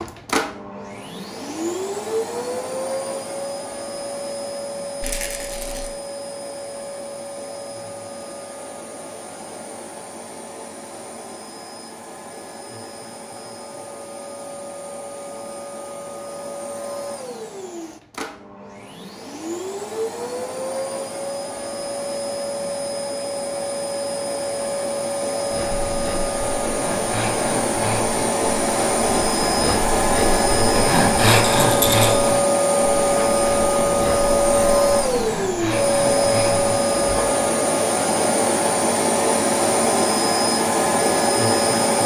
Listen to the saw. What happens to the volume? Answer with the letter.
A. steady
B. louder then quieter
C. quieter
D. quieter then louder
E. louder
B.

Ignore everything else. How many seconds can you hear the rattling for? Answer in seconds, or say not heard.
2 s.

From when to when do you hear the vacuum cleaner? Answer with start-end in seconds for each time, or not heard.
0.0-42.0.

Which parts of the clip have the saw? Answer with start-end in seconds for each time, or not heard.
25.4-37.5.